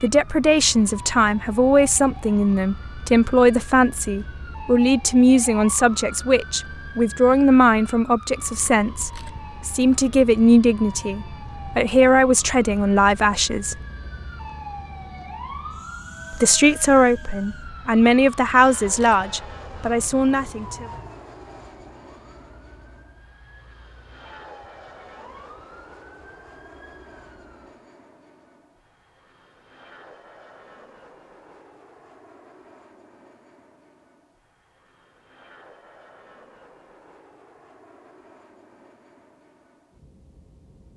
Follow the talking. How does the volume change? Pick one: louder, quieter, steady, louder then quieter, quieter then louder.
steady.